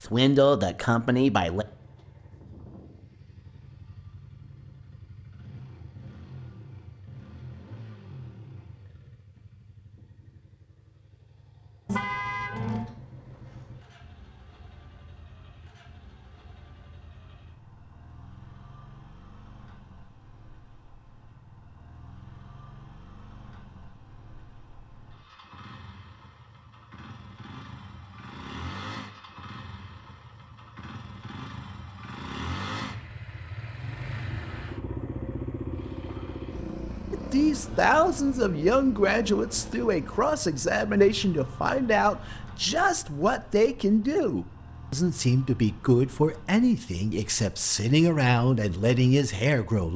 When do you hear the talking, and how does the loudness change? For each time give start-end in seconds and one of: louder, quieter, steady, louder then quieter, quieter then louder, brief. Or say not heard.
0.0-1.6 brief
37.1-49.9 steady.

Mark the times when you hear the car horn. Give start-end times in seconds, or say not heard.
11.8-12.9.